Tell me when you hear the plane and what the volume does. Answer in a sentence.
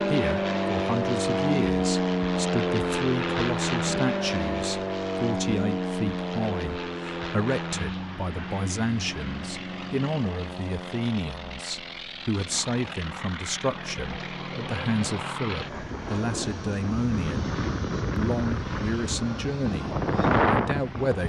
The plane can be heard from 0.0 to 21.2 s, getting quieter then louder.